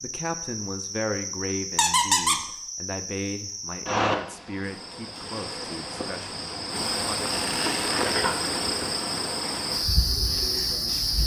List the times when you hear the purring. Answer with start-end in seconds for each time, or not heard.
not heard.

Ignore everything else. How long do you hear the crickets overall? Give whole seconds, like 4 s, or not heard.
11 s.